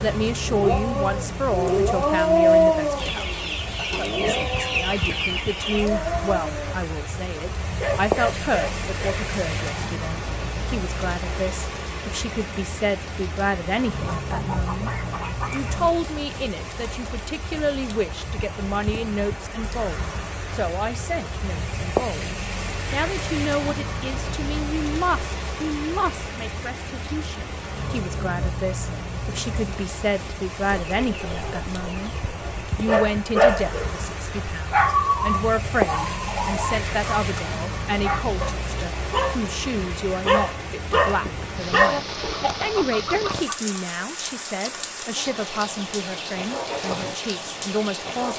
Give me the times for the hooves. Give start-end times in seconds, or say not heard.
not heard.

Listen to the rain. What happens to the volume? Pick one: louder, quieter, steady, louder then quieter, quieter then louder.
steady.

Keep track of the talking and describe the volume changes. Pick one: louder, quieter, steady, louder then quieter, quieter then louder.
steady.